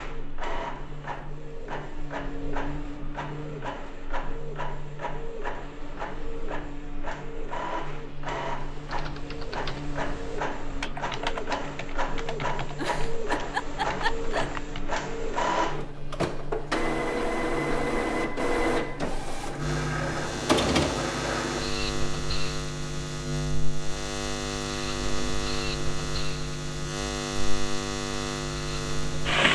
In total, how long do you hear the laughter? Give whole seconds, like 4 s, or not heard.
2 s.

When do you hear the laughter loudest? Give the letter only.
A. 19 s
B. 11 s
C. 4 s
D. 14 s
D.